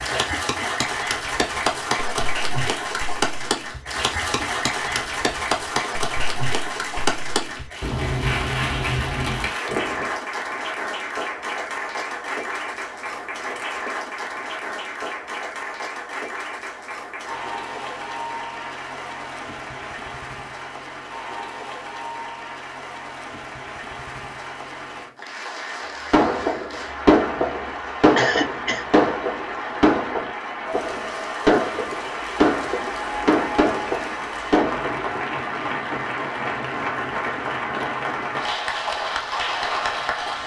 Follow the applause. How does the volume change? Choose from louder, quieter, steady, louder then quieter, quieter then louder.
quieter then louder.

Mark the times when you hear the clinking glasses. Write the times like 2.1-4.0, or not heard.
not heard.